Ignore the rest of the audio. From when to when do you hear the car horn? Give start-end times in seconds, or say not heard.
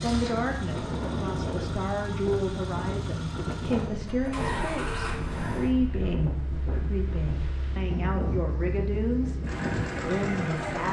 not heard.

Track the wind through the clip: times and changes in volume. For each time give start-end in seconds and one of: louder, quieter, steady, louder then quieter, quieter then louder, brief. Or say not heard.
0.0-10.8 steady.